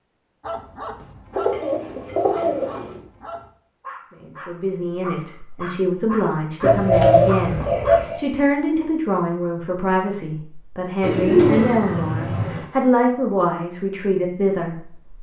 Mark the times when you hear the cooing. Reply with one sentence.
The cooing can be heard from 1.4 to 3.0 s, from 6.6 to 8.2 s and from 11.0 to 12.7 s.